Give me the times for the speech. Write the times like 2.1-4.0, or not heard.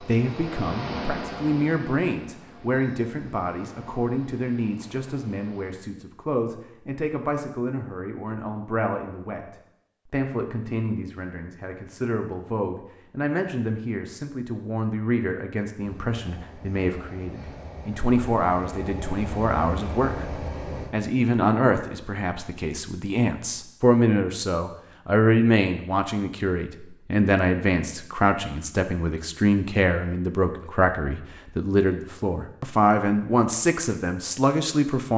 0.0-35.1.